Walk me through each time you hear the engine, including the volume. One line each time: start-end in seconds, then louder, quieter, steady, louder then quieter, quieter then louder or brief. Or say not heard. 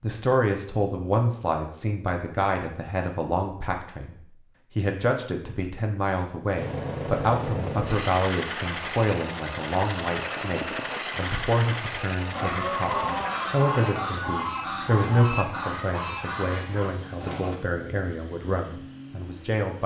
6.5-19.8 quieter.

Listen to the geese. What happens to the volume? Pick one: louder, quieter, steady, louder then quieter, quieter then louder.
quieter.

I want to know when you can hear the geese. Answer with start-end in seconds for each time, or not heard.
12.3-17.6.